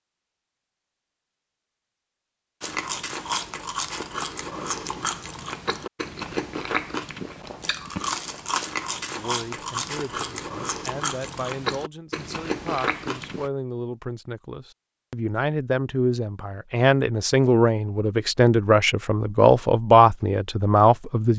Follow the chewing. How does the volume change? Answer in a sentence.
The loudness of the chewing stays about the same.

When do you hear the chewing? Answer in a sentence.
You can hear the chewing from 2.6 to 13.5 s.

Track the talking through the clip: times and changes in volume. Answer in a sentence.
The talking can be heard from 9.2 to 21.3 s, getting louder.